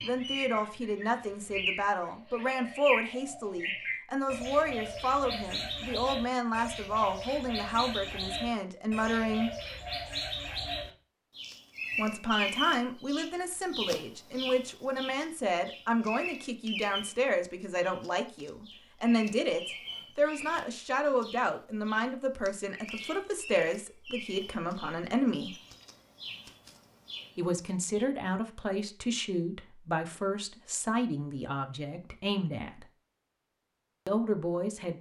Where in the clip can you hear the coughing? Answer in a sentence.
The coughing can't be heard in this clip.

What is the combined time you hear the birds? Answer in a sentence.
The birds can be heard for 28 seconds in total.